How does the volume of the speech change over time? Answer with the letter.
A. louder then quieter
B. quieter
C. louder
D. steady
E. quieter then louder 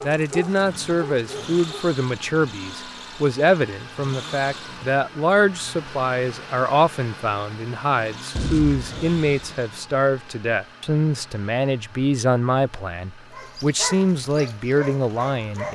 D.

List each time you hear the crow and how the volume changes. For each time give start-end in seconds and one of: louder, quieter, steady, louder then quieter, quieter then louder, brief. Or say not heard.
not heard.